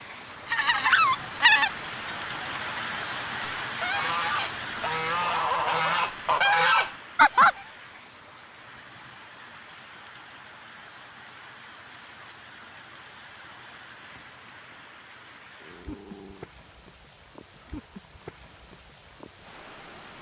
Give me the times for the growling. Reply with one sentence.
The growling can be heard from 15.6 to 16.5 s.